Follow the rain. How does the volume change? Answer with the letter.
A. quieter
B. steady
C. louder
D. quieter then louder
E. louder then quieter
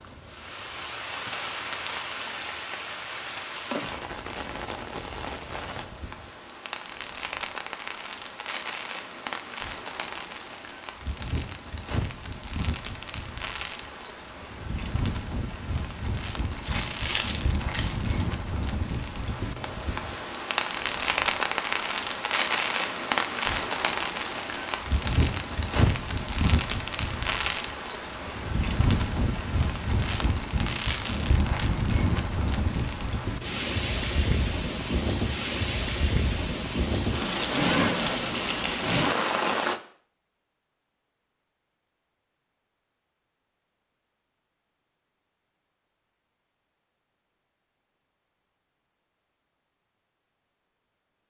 C.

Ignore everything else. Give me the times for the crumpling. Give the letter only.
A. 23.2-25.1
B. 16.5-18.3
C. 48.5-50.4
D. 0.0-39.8
B.